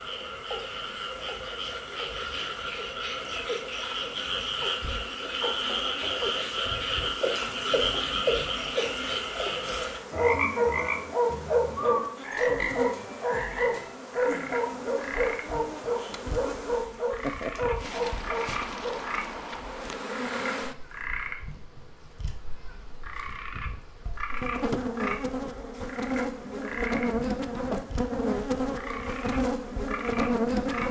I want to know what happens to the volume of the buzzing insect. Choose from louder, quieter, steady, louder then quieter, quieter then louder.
louder.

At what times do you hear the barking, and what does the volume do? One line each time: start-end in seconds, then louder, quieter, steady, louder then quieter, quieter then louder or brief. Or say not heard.
10.2-19.1 quieter.